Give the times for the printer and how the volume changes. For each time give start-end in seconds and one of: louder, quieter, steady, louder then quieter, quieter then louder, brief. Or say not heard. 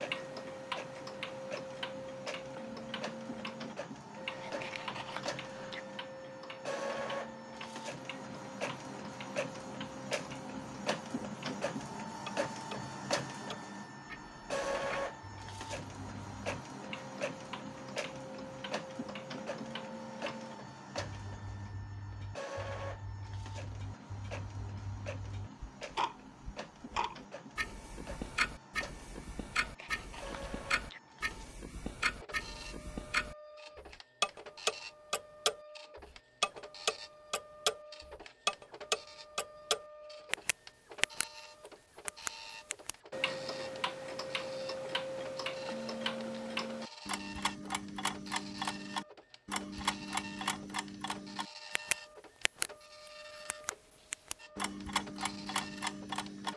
0.0-56.5 quieter.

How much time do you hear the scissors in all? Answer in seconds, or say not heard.
3 s.